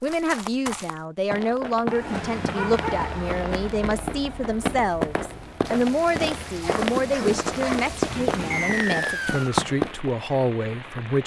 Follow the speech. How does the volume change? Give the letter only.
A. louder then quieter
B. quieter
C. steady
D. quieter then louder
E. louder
C.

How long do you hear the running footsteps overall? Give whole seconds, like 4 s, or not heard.
10 s.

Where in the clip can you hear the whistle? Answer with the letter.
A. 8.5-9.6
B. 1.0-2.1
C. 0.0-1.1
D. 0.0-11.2
A.